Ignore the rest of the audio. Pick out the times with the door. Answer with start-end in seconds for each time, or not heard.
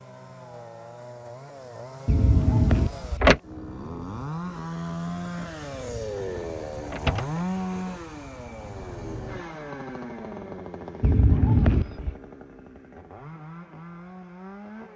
2.0-3.4, 5.8-7.4, 11.0-12.2.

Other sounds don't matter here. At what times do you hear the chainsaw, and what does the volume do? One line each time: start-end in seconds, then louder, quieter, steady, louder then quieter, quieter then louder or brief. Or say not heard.
0.0-14.9 louder then quieter.